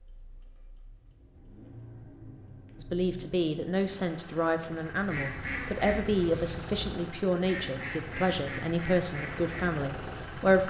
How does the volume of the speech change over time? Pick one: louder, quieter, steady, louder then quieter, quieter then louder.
steady.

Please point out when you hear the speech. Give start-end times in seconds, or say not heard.
2.8-10.6.